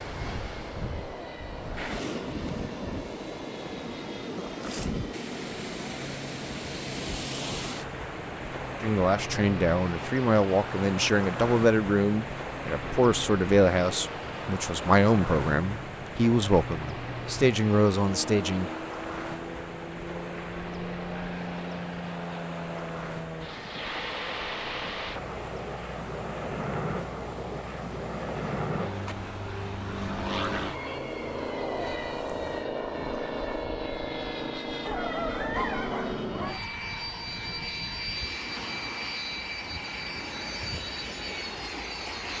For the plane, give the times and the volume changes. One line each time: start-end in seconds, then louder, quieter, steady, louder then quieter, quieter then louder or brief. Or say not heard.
0.0-42.3 louder.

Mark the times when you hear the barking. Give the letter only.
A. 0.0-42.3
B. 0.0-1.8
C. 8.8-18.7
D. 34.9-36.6
D.